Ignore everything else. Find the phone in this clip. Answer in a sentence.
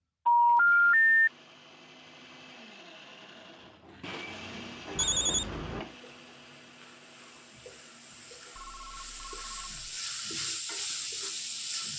The phone can be heard from 0.2 to 1.3 s, from 5.0 to 5.8 s and from 8.6 to 9.9 s.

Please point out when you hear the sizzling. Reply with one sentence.
You can hear the sizzling from 3.8 to 11.9 s.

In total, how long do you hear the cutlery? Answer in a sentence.
You can't hear the cutlery here.